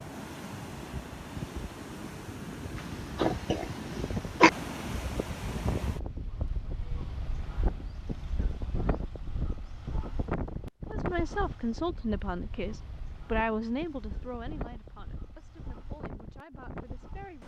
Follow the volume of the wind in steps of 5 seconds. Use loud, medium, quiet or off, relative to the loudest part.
loud, loud, loud, medium.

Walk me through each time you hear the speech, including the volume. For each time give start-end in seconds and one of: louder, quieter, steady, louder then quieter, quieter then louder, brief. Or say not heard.
10.9-17.4 quieter.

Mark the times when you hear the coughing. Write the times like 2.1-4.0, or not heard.
3.1-4.5.